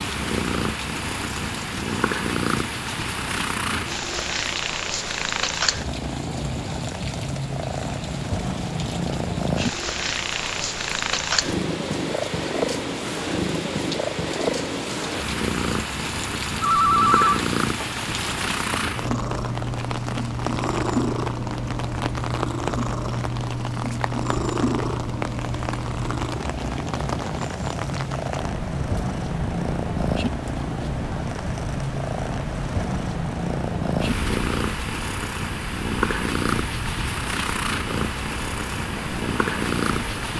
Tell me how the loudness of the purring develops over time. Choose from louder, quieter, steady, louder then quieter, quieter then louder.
steady.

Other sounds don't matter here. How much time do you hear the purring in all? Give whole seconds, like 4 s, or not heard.
40 s.